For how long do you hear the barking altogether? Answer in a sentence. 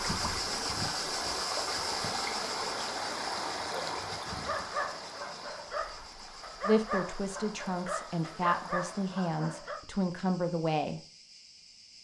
You can hear the barking for 6 seconds altogether.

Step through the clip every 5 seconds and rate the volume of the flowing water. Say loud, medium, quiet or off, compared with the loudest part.
loud, quiet, off.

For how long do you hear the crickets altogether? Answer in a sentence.
The crickets can be heard for 12 seconds in total.